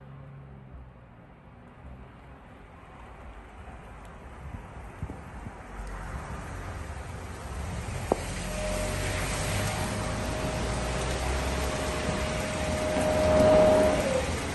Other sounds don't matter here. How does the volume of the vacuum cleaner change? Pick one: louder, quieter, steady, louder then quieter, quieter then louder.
louder.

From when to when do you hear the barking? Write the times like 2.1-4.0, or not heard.
not heard.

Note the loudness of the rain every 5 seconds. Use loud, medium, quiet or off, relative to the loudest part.
quiet, loud, loud.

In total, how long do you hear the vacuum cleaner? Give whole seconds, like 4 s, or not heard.
6 s.